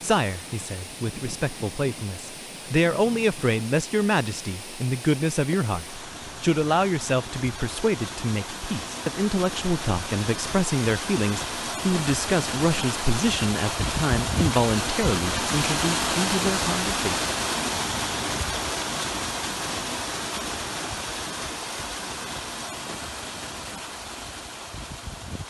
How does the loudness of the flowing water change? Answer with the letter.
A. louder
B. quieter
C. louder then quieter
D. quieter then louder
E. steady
C.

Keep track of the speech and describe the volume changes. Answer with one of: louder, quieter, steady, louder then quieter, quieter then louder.
steady.